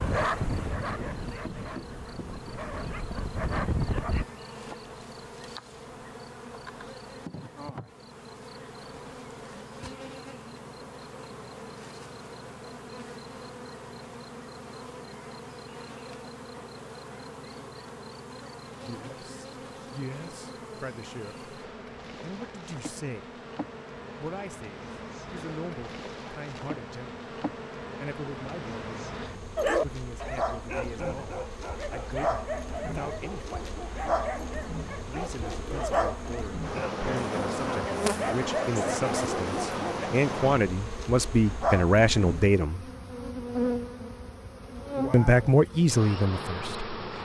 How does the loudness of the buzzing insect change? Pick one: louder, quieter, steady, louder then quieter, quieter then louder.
louder.